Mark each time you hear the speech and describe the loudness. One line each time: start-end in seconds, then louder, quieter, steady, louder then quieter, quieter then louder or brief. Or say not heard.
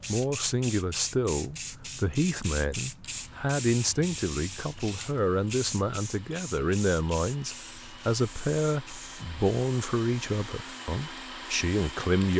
0.1-12.3 steady.